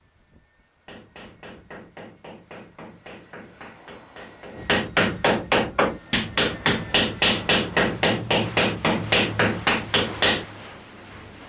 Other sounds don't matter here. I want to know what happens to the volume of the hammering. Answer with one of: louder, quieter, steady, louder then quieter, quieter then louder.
louder.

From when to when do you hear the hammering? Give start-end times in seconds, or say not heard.
0.8-10.4.